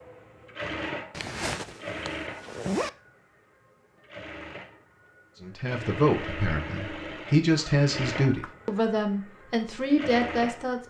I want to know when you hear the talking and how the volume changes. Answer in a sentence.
The talking can be heard from 5.4 to 10.8 s, at a steady volume.